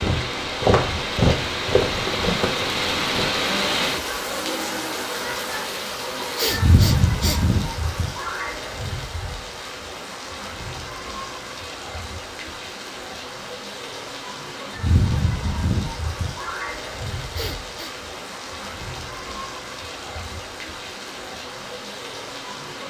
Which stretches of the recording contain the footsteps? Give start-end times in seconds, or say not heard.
0.0-3.4.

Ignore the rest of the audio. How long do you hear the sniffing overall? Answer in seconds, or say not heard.
2 s.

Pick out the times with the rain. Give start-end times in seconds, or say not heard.
0.0-22.8.